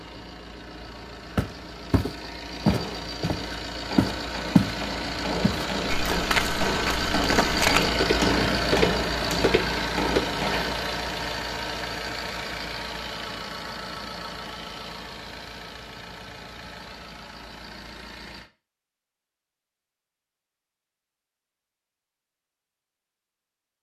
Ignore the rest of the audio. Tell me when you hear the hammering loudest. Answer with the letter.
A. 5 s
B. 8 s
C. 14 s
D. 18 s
B.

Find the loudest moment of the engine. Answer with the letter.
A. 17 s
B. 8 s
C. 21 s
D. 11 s
B.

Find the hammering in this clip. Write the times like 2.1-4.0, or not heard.
2.5-10.8.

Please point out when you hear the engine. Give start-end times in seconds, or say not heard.
0.0-18.5.